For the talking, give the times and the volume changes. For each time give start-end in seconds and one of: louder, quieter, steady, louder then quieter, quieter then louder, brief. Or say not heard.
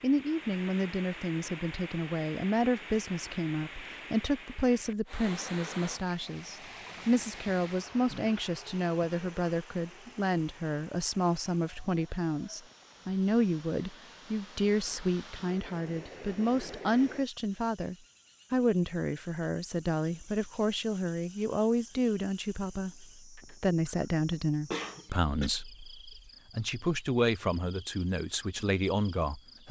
0.0-29.6 steady.